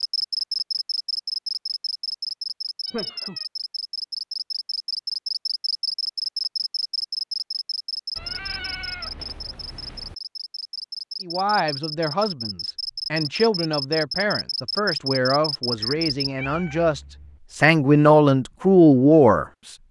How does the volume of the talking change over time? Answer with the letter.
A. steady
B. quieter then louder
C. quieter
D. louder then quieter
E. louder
E.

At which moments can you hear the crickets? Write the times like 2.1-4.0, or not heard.
0.0-16.3.